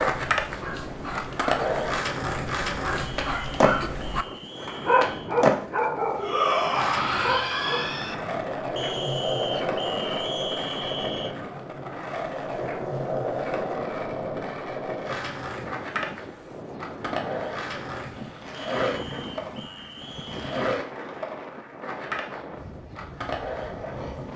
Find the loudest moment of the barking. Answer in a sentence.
The loudest moment of the barking is at 5 seconds.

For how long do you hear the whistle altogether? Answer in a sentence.
The whistle can be heard for 7 seconds in total.